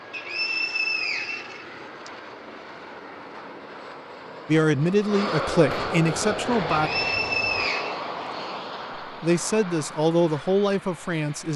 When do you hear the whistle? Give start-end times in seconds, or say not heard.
0.1-2.1, 6.7-8.0.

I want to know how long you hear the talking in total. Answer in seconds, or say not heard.
5 s.